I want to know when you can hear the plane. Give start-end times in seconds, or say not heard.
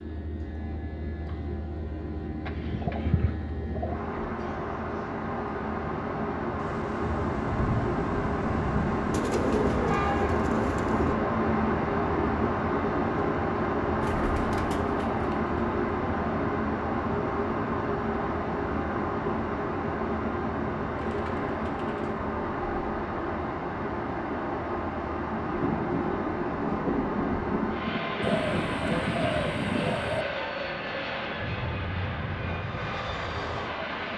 0.0-34.1.